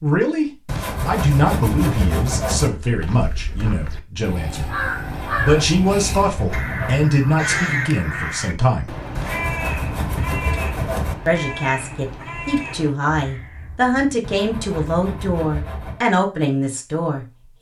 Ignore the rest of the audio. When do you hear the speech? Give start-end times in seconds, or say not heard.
0.0-8.9, 11.2-17.5.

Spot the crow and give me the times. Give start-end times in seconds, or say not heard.
2.6-14.2.